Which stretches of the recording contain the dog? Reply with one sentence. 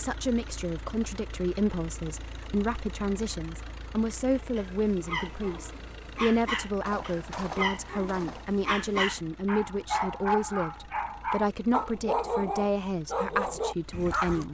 The dog can be heard from 4.3 to 14.4 s.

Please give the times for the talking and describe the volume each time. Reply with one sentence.
You can hear the talking from 0.0 to 14.5 s, at a steady volume.